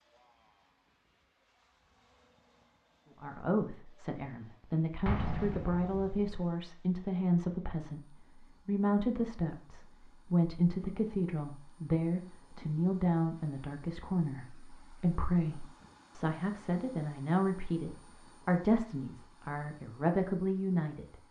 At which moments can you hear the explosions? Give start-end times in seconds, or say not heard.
5.0-6.2.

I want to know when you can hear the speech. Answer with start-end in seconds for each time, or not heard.
3.2-21.1.